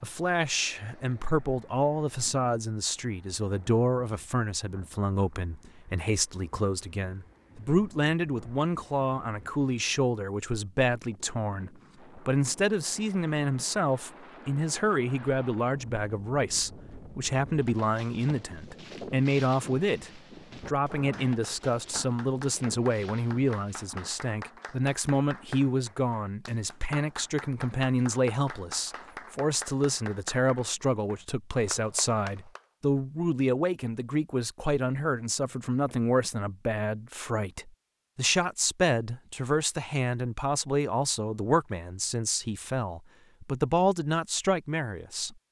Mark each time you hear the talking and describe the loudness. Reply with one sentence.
The talking can be heard from 0.0 to 45.4 s, at a steady volume.